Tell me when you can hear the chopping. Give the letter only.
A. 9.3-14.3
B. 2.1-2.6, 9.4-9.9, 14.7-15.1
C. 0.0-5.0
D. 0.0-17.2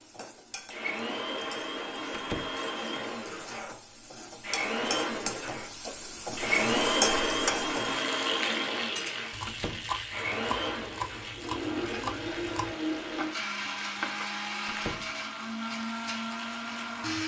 A.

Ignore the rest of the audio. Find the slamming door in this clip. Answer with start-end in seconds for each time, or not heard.
2.1-2.6, 9.4-9.9, 14.7-15.1.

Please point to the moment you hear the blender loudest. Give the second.
7 s.